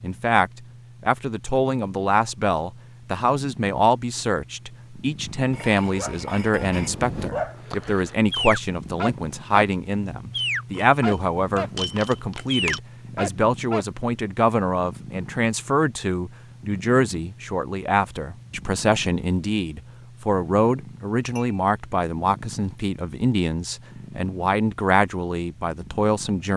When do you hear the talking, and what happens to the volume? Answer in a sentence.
The talking can be heard from 0.0 to 26.5 s, at a steady volume.